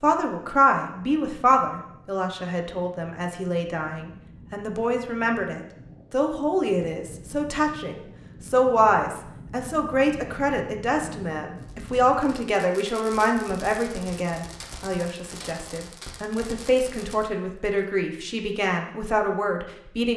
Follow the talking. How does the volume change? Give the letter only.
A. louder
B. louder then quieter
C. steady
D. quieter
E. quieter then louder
C.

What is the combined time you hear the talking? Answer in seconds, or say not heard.
20 s.